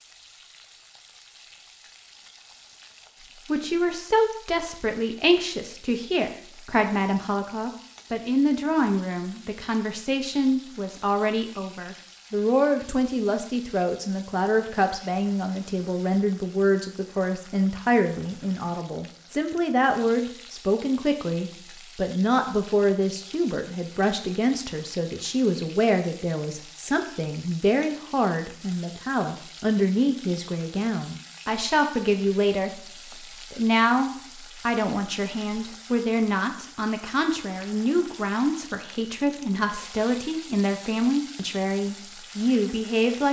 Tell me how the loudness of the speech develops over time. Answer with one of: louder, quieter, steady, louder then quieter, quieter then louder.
steady.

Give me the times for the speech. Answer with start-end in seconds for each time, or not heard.
3.5-43.2.